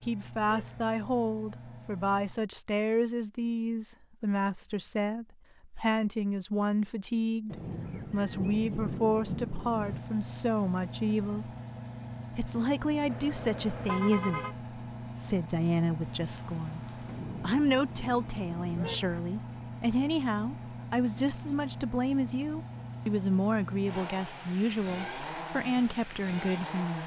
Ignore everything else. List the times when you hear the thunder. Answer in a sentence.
The thunder can be heard from 7.5 to 10.0 s and from 16.0 to 18.9 s.